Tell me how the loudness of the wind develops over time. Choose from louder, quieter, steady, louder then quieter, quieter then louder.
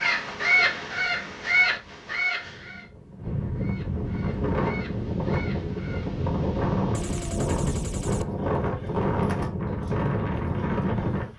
louder.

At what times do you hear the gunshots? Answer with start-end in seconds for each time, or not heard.
6.9-8.9.